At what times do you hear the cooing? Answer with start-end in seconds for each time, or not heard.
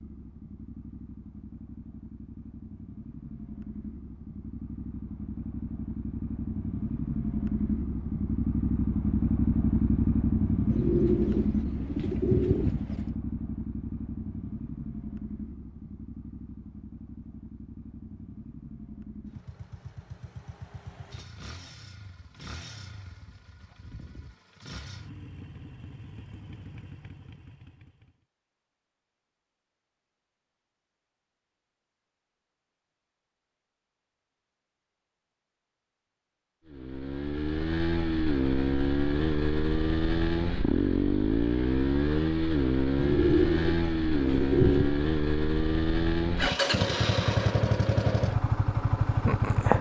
10.7-13.1, 43.0-45.0.